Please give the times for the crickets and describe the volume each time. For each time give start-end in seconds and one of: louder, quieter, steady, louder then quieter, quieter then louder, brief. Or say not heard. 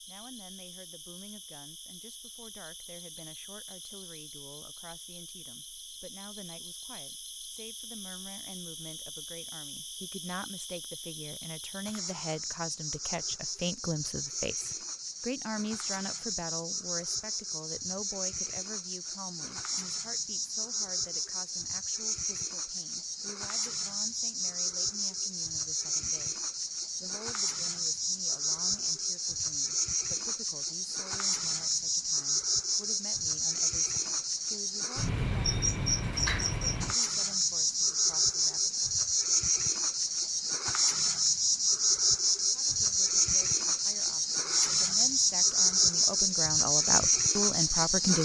0.0-48.2 louder.